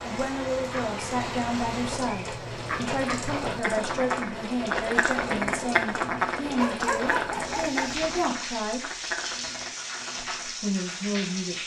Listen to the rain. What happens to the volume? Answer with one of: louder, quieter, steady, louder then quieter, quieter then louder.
steady.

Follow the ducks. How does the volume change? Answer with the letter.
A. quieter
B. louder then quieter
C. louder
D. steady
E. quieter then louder
B.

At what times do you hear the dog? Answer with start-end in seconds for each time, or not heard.
6.5-8.1.